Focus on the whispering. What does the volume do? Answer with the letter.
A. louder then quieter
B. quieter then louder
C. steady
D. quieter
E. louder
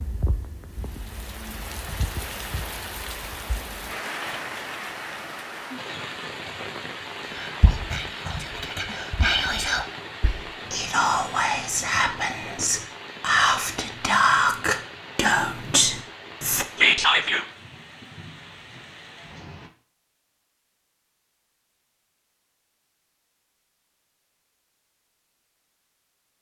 E.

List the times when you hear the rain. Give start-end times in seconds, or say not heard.
0.0-19.7.